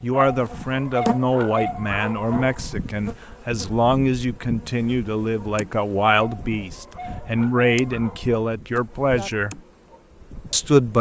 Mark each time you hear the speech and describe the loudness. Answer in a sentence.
The speech can be heard from 0.0 to 9.6 s, at a steady volume; and briefly from 10.5 to 10.9 s.